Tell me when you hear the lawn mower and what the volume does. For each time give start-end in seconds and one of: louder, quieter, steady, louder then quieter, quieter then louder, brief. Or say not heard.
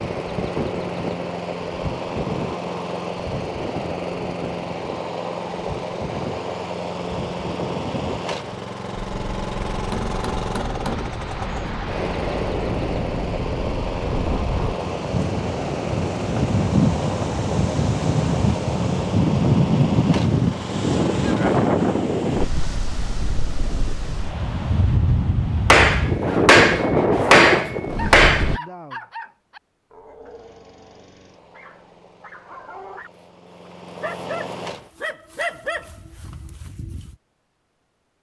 0.0-21.6 steady
30.2-34.9 louder.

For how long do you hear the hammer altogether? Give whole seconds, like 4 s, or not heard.
4 s.